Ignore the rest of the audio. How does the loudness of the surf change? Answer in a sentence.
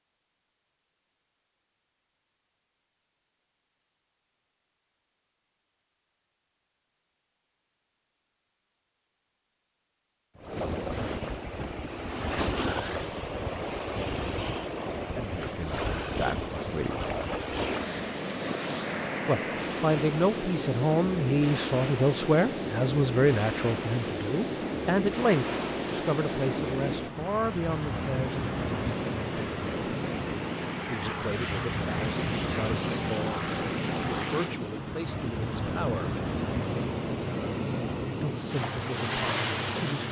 The loudness of the surf stays about the same.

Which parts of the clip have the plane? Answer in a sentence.
You can hear the plane from 25.2 to 40.0 s.